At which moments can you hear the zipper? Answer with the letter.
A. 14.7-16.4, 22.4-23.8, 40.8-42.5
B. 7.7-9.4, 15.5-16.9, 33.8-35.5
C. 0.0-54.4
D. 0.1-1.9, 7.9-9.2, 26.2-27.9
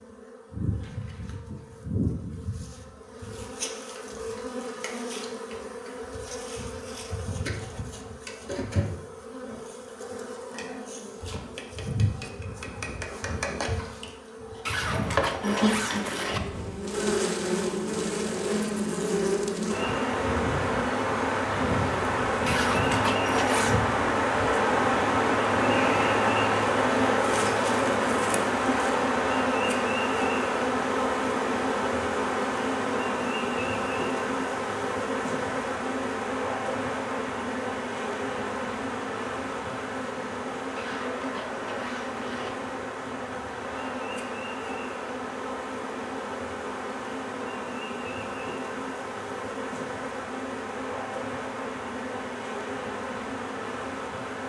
A.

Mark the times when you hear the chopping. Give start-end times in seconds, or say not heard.
not heard.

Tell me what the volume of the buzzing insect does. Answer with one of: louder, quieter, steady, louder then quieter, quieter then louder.
louder then quieter.